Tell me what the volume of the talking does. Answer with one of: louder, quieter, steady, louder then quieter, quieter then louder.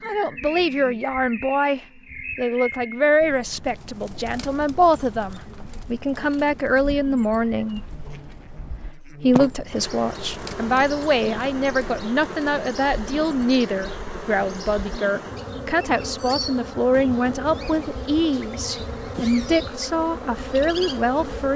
steady.